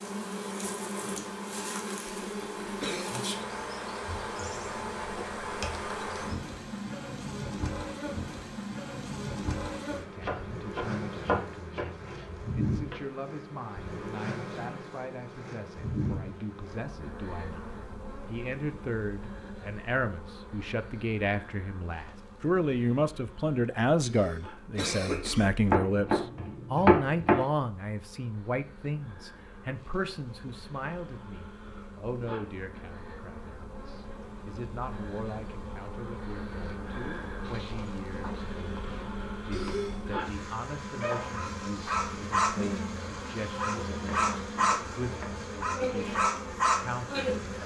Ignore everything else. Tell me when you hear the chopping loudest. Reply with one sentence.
The loudest moment of the chopping is at 27 seconds.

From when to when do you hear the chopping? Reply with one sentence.
The chopping can be heard from 10.2 to 12.9 s, from 25.7 to 27.4 s and from 44.2 to 45.4 s.